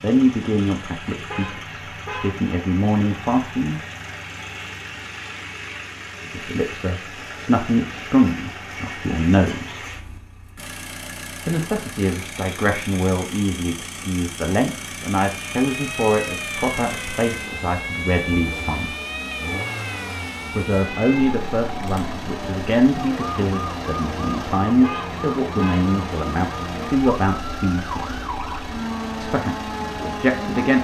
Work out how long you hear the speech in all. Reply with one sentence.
You can hear the speech for 24 seconds altogether.